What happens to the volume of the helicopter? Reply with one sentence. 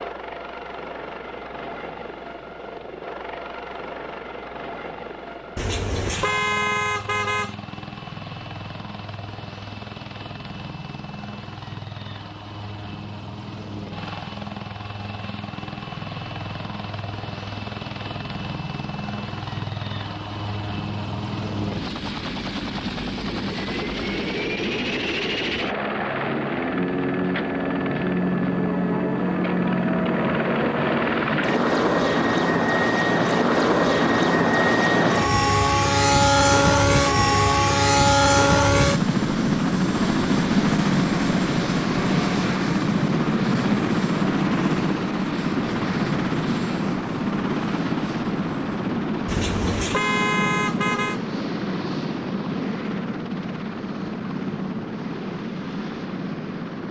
The volume of the helicopter goes up, then down.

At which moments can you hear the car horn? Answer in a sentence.
You can hear the car horn from 5.5 to 7.5 s and from 49.2 to 51.2 s.